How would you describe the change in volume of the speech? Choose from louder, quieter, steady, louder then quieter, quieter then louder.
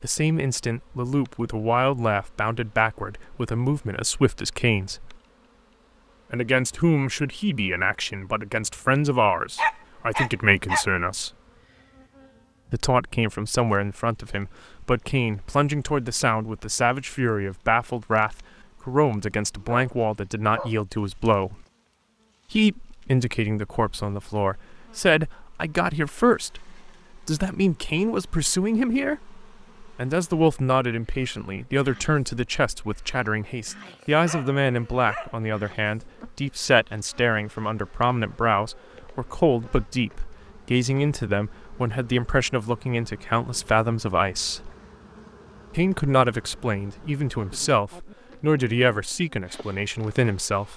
steady.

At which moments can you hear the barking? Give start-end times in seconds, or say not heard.
9.6-10.8, 19.6-20.9, 33.8-35.8.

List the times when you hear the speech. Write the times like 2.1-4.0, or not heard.
0.0-5.2, 6.3-11.3, 12.7-21.6, 22.5-44.7, 45.7-50.7.